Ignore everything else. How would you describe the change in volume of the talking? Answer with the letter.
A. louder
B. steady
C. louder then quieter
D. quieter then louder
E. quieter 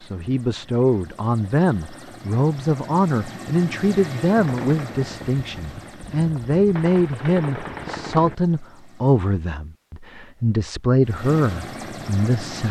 B.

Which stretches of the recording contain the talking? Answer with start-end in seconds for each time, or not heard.
0.0-12.6.